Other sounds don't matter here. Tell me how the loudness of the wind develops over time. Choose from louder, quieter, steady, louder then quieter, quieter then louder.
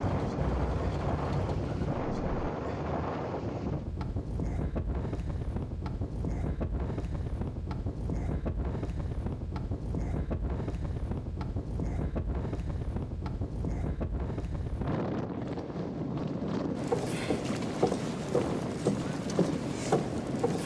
steady.